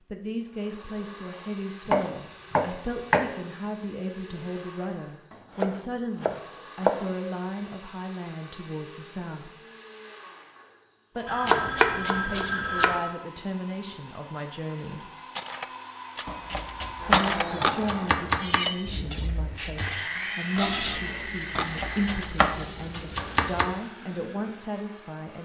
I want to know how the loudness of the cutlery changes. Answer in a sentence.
The loudness of the cutlery goes up, then down.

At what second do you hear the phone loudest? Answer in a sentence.
The loudest moment of the phone is at 13 seconds.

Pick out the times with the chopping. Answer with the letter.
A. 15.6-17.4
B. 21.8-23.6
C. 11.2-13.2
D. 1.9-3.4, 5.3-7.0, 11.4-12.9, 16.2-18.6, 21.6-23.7
D.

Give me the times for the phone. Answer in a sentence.
The phone can be heard from 11.2 to 13.2 s.